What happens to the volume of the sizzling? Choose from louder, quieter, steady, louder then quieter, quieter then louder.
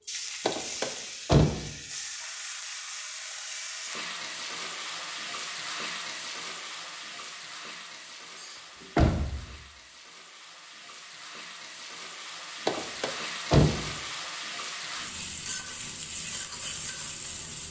quieter then louder.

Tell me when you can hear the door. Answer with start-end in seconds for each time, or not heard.
0.5-1.6, 8.3-9.6, 12.7-13.8.